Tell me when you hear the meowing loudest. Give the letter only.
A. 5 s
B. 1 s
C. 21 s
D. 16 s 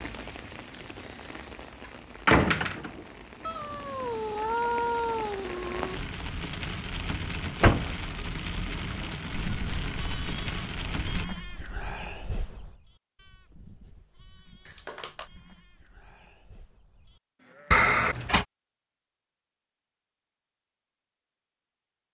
A.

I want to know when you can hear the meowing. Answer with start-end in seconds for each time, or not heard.
3.5-6.0, 14.7-15.2.